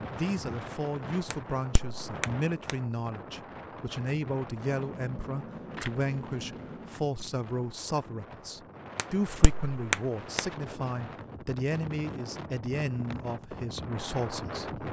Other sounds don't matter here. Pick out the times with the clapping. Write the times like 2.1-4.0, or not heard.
1.3-2.8, 8.9-10.4.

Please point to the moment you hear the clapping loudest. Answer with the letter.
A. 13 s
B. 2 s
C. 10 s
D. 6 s
C.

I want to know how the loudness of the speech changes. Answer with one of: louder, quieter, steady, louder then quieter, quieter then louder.
steady.